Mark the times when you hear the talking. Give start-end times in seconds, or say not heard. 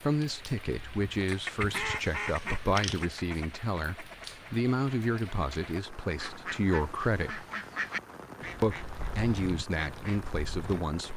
0.0-7.5, 8.6-11.1.